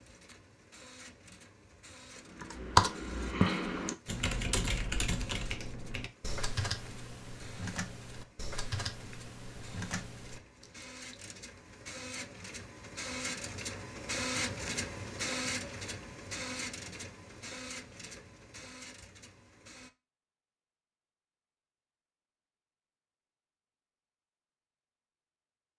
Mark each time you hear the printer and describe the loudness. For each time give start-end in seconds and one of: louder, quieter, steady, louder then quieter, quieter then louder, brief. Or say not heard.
0.0-19.9 louder then quieter.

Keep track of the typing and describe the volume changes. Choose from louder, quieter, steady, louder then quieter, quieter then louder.
quieter.